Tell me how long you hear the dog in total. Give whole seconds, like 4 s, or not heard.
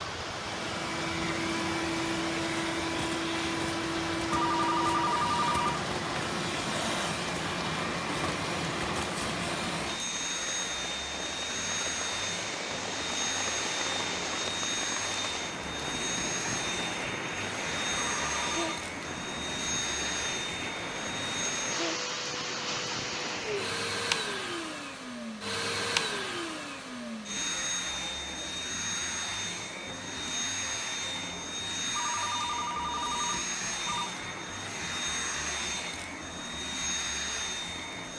not heard.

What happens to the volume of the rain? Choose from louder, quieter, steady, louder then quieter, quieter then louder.
steady.